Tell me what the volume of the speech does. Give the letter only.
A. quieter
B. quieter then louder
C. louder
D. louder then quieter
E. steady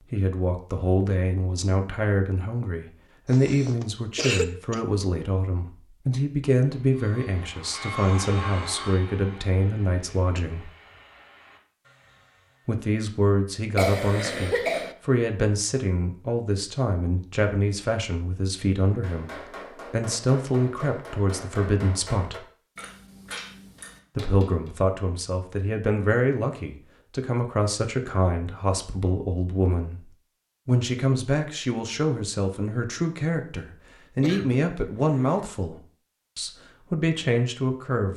E.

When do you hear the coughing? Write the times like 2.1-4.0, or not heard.
3.3-4.8, 13.8-14.9, 34.2-35.4.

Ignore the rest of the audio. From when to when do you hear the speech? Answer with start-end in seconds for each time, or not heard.
0.1-10.7, 12.7-22.4, 24.1-38.1.